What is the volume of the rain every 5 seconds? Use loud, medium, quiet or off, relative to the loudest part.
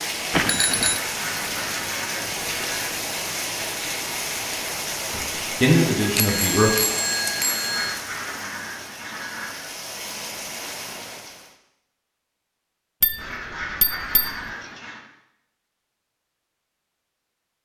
loud, loud, medium, off.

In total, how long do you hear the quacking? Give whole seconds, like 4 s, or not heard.
6 s.